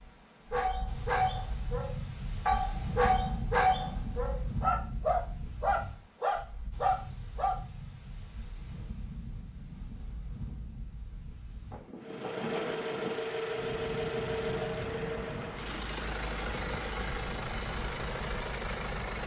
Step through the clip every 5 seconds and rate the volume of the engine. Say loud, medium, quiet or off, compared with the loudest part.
off, off, loud, loud.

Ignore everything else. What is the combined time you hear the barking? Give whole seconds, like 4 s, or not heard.
7 s.